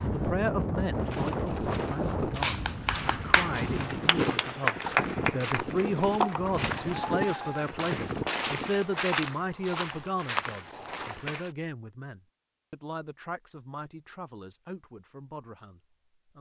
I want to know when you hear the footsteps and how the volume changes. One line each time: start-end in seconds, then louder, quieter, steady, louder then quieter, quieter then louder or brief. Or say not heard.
0.9-11.5 louder.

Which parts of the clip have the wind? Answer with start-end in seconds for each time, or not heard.
0.0-8.7.